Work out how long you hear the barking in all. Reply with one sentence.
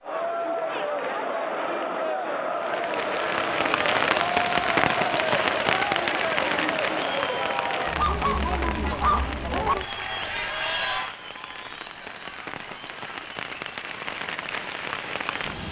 You can hear the barking for 2 seconds altogether.